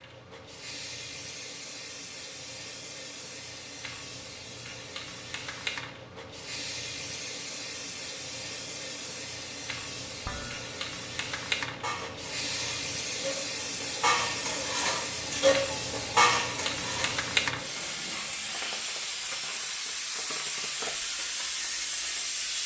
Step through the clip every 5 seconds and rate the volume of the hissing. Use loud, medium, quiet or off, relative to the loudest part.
medium, medium, loud, loud, loud.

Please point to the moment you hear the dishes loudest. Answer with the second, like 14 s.
16 s.